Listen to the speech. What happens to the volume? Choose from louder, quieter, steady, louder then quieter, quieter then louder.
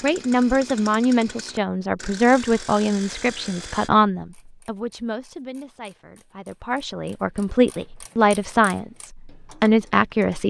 quieter then louder.